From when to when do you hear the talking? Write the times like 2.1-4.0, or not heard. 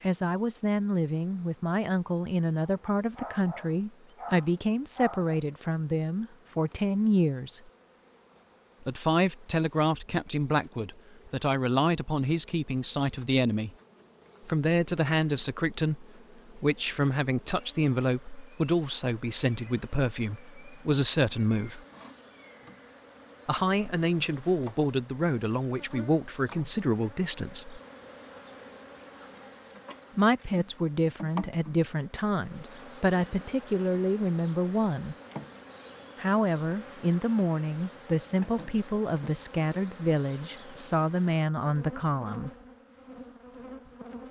0.0-7.6, 8.8-13.7, 14.4-21.8, 23.4-27.8, 30.1-35.1, 36.1-42.5.